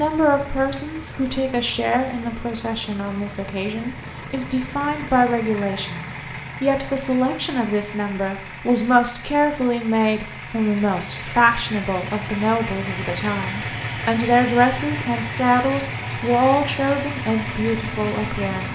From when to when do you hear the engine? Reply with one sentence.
You can hear the engine from 0.0 to 18.7 s.